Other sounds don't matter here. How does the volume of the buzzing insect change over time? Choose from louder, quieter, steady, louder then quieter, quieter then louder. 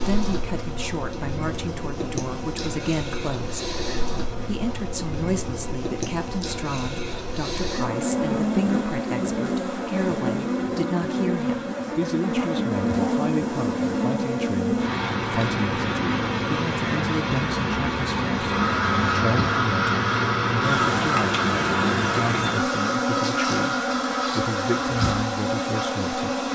louder.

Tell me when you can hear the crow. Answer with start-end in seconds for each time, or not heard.
18.5-25.9.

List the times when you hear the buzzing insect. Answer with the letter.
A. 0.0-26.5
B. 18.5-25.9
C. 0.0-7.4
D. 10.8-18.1
A.